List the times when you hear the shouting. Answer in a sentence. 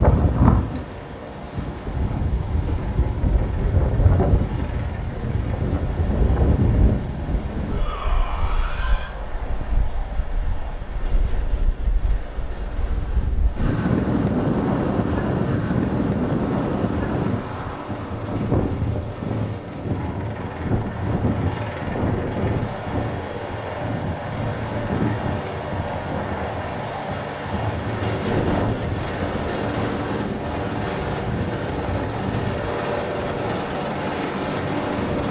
The shouting can be heard from 7.7 to 9.1 s.